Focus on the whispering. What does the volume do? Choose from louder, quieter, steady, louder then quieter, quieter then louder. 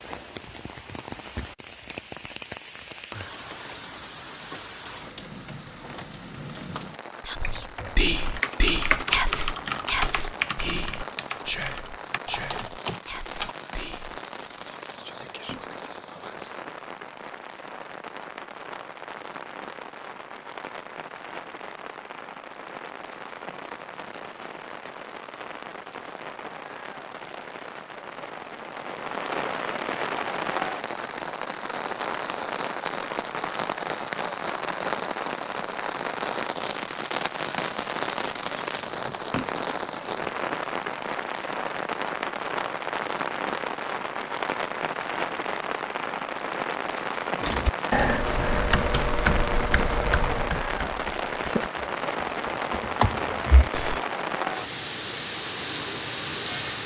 quieter.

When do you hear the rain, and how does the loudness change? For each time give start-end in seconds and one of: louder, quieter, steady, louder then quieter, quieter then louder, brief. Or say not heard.
0.0-56.8 louder.